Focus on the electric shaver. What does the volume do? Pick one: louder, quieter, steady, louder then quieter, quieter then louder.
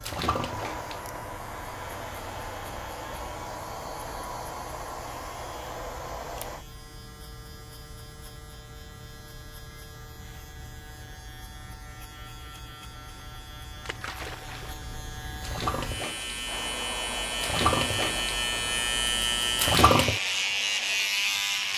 louder.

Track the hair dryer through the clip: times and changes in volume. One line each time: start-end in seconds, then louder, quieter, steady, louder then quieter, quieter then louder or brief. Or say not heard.
0.2-6.7 steady
16.4-21.4 quieter.